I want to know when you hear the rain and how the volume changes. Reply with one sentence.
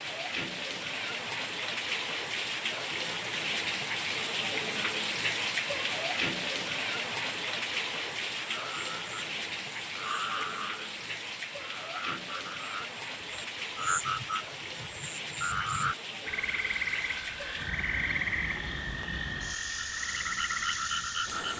The rain can be heard from 0.0 to 21.5 s, getting quieter.